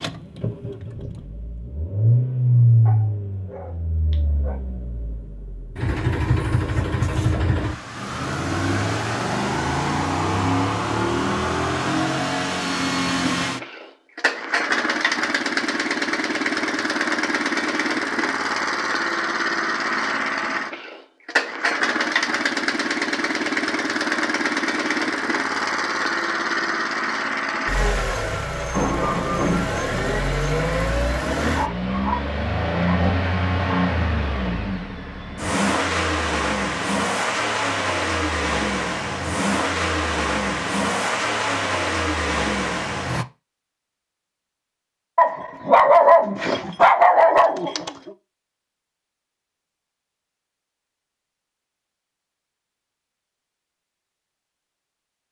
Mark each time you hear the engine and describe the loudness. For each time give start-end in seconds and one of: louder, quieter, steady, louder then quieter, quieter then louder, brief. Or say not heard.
0.0-43.2 steady.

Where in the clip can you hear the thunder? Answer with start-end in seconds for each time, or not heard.
28.7-30.8.